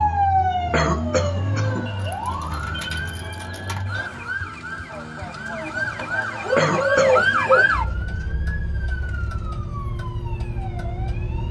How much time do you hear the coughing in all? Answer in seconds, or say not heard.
2 s.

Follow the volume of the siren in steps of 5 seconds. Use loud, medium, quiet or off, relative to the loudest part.
loud, loud, medium.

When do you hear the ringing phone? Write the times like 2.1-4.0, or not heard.
not heard.